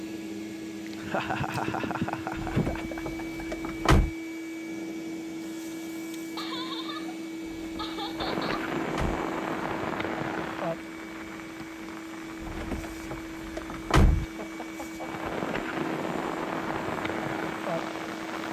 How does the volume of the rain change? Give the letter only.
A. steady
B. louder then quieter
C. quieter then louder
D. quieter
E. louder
C.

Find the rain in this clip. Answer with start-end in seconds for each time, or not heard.
8.2-18.4.